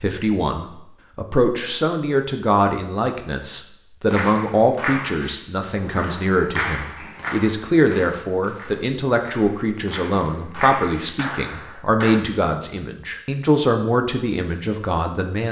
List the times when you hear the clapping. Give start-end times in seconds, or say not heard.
4.0-12.2.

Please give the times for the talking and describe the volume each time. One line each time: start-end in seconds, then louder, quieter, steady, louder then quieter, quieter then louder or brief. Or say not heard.
0.0-15.4 steady.